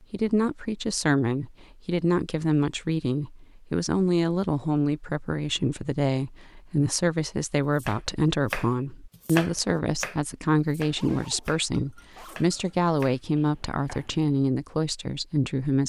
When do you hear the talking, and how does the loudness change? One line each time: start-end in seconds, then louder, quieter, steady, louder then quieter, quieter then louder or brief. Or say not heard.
0.1-15.8 steady.